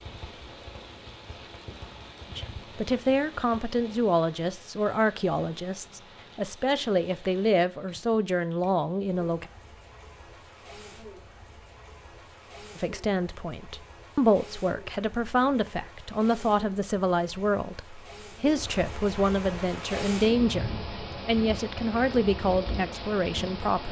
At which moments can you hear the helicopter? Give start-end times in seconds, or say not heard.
not heard.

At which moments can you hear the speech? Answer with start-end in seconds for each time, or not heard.
2.3-9.4, 12.8-23.8.